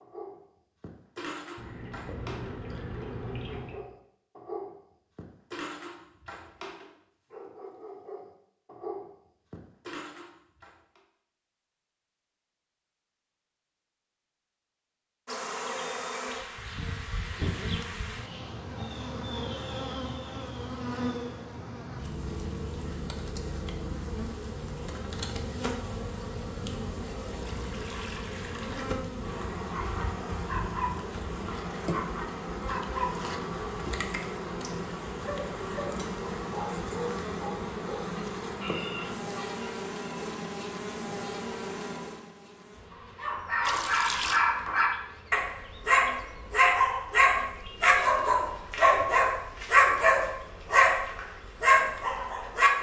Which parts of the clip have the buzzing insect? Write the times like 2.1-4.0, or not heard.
15.2-52.7.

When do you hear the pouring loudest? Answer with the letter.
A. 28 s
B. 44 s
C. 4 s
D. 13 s
B.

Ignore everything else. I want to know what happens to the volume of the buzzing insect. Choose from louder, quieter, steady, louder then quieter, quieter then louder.
quieter.